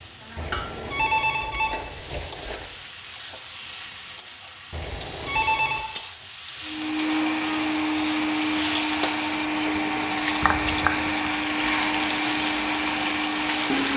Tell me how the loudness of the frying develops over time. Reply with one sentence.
The volume of the frying goes up.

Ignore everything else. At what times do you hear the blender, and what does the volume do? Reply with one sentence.
The blender can be heard from 6.7 to 13.9 s, at a steady volume.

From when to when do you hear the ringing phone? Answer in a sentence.
The ringing phone can be heard from 0.3 to 2.6 s, from 4.7 to 5.8 s and from 10.4 to 11.2 s.